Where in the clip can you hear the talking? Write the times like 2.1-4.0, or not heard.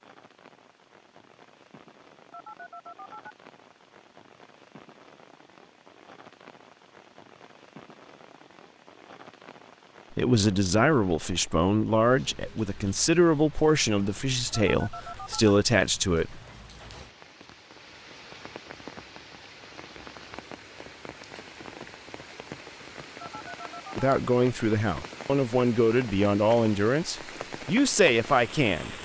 10.1-16.4, 23.9-28.9.